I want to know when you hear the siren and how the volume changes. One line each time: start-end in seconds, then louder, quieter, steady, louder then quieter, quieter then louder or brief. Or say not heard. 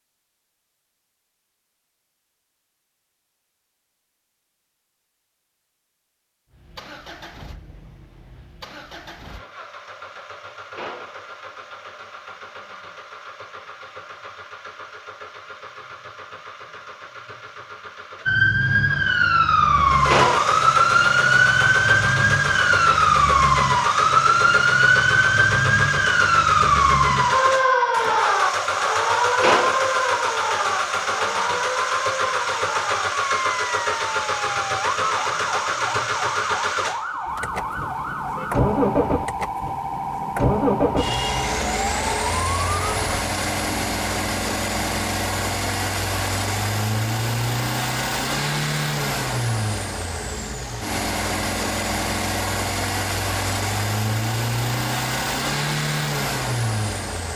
18.2-43.2 quieter.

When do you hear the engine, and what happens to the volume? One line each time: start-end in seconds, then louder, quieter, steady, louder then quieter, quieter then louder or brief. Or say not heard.
6.5-57.3 louder.